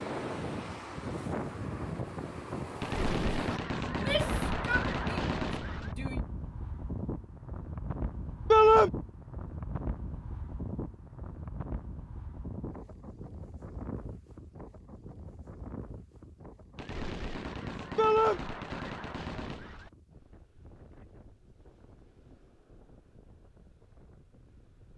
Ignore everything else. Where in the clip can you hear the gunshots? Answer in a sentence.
The gunshots can be heard from 2.8 to 6.0 s and from 16.8 to 19.9 s.